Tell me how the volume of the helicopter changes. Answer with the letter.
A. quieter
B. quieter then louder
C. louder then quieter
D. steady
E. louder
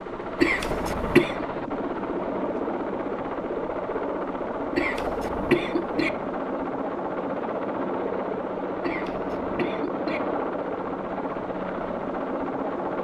D.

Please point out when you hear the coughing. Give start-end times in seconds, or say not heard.
0.4-1.4, 4.8-6.1, 8.8-10.2.